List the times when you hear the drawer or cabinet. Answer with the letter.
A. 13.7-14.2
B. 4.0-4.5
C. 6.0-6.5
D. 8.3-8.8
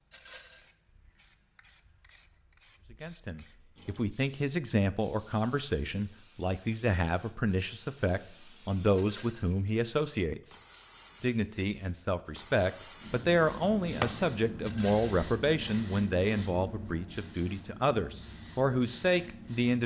A.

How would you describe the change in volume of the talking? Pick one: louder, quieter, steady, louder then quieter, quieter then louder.
steady.